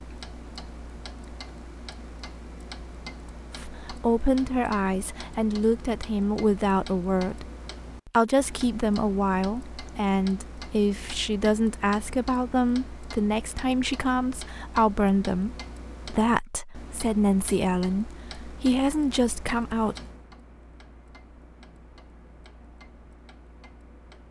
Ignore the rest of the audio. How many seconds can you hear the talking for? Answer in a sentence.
The talking can be heard for 16 seconds in total.